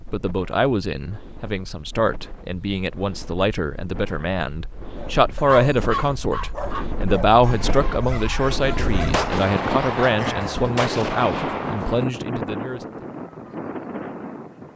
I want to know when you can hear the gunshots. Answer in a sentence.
The gunshots can be heard from 8.8 to 12.1 s.